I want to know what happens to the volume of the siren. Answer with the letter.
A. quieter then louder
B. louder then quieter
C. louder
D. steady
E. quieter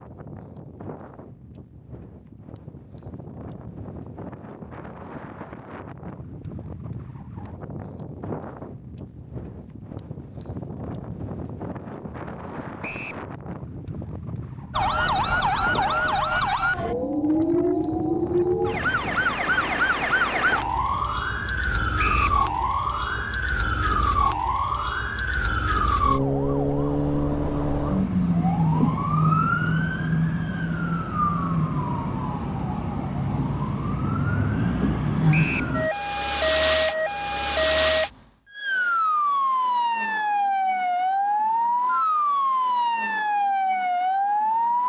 D.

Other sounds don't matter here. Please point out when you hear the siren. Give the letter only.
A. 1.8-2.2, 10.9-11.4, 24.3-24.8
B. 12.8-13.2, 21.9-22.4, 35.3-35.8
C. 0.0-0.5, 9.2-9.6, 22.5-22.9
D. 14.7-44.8
D.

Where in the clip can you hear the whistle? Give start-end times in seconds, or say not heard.
12.8-13.2, 21.9-22.4, 35.3-35.8.